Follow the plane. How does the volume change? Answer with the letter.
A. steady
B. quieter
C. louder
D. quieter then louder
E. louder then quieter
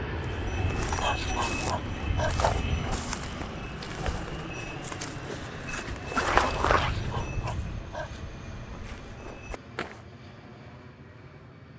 B.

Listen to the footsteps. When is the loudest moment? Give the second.
6 s.